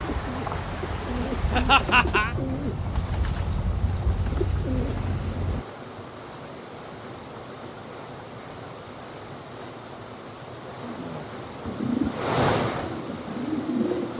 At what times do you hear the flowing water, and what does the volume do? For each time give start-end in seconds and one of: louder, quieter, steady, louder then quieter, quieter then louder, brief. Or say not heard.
0.0-14.1 louder.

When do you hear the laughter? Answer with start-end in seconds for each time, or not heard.
1.5-2.4.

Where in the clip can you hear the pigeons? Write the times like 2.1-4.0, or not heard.
0.0-5.7, 11.7-14.1.